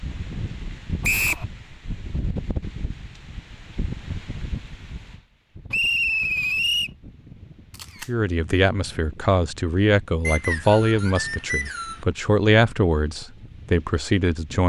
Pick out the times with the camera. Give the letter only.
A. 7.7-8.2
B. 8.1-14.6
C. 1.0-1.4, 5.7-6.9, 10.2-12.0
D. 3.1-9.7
A.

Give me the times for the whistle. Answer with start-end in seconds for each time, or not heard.
1.0-1.4, 5.7-6.9, 10.2-12.0.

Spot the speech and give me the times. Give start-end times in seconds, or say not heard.
8.1-14.6.